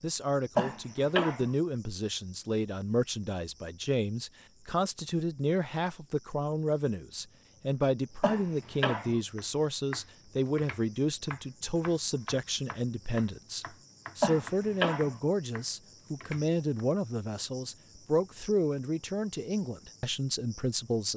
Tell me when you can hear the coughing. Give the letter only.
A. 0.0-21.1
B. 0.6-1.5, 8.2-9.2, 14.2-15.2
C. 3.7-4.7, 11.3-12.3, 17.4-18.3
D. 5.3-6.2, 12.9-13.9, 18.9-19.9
B.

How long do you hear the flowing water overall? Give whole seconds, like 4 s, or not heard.
not heard.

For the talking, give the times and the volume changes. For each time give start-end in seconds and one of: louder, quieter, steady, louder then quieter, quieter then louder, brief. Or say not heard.
0.0-21.1 steady.